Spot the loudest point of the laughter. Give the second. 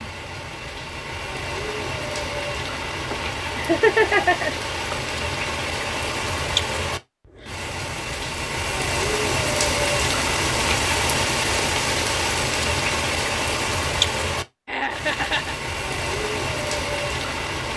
4 s.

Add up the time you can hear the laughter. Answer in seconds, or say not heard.
3 s.